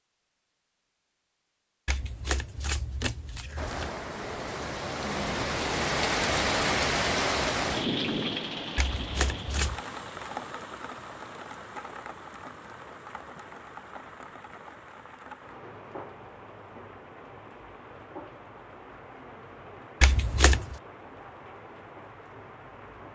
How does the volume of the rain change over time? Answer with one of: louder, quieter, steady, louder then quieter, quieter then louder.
quieter.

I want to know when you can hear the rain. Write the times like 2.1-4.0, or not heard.
3.5-23.0.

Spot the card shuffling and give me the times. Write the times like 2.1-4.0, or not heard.
1.9-3.9, 8.8-9.8, 20.0-20.8.